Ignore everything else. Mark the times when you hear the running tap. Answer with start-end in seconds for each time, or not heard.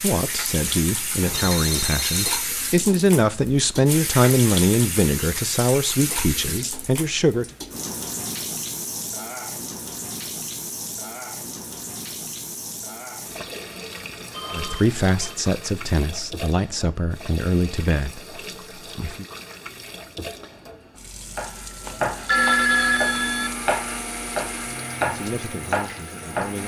0.0-26.6.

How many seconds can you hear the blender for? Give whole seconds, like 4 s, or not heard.
4 s.